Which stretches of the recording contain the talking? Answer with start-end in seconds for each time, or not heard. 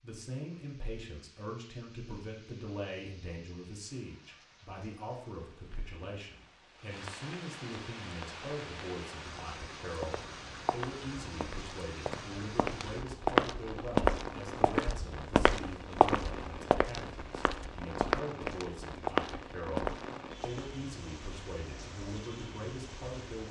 0.0-23.4.